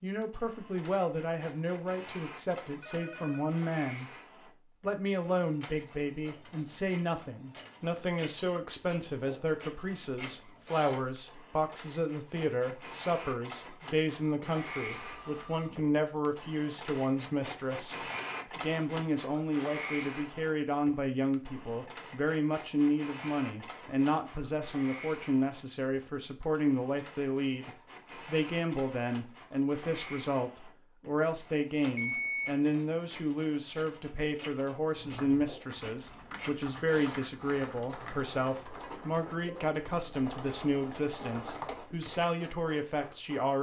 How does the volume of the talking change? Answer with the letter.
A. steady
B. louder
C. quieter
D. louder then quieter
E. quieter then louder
A.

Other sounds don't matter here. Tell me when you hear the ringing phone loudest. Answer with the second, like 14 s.
32 s.